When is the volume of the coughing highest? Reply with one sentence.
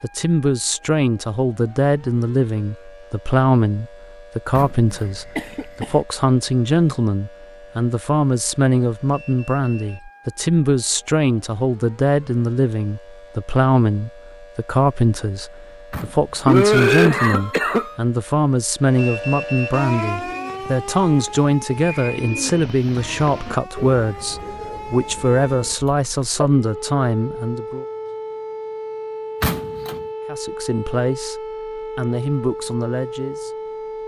The volume of the coughing peaks at 17 seconds.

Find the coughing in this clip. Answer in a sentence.
You can hear the coughing from 4.9 to 6.0 s, from 16.4 to 17.9 s and from 25.9 to 26.5 s.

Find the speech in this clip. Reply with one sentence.
You can hear the speech from 0.0 to 27.9 s and from 30.2 to 33.7 s.